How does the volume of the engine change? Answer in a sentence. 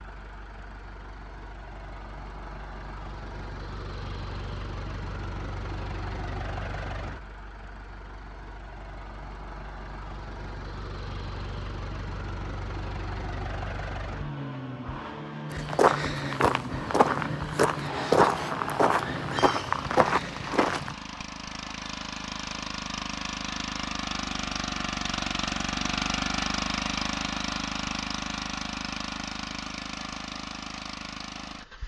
The loudness of the engine goes up.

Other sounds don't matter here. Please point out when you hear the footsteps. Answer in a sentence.
The footsteps can be heard from 15.5 to 20.9 s.